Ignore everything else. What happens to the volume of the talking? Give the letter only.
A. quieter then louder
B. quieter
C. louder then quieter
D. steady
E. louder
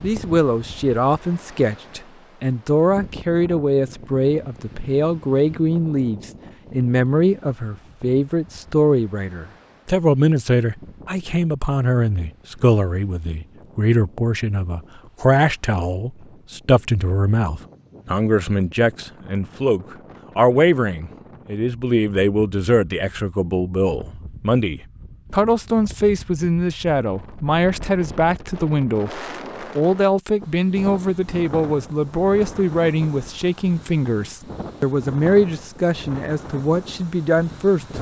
D.